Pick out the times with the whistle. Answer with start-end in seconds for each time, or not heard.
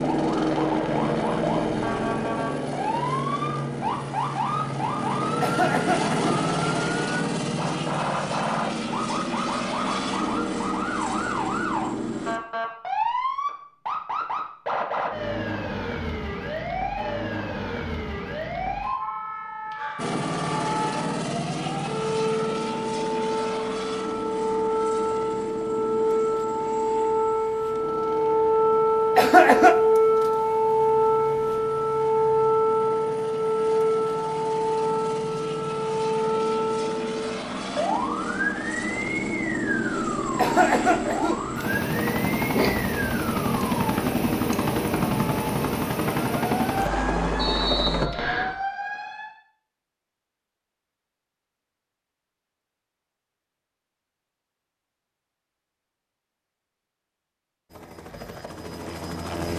47.4-48.5.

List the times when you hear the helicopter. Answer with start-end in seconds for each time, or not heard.
0.0-12.4, 19.9-48.1, 57.6-59.5.